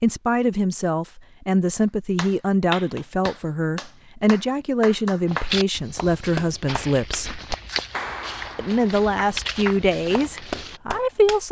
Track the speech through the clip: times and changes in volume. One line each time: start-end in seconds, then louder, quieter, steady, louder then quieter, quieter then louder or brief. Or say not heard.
0.0-7.4 steady
8.6-11.4 brief.